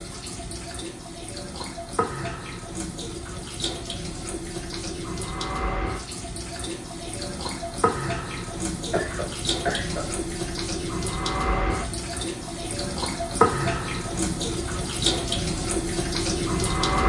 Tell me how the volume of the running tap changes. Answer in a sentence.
The loudness of the running tap goes up.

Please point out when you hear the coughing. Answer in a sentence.
The coughing can be heard from 8.9 to 10.2 s.